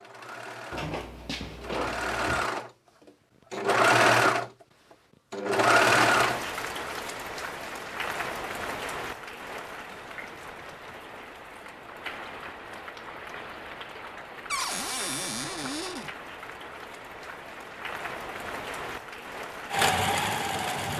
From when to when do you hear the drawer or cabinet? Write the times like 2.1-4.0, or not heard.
0.7-2.5, 9.9-11.1, 14.5-16.1.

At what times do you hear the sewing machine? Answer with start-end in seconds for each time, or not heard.
0.0-6.5, 19.7-20.9.